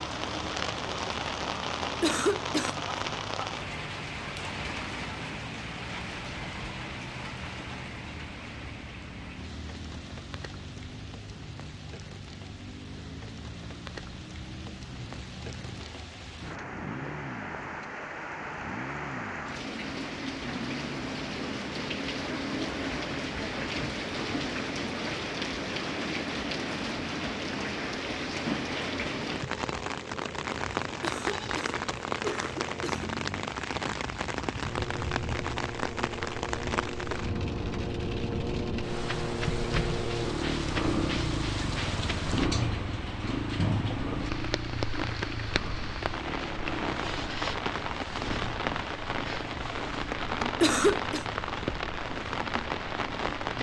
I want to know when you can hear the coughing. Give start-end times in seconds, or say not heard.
1.8-2.8, 30.9-33.1, 50.4-51.2.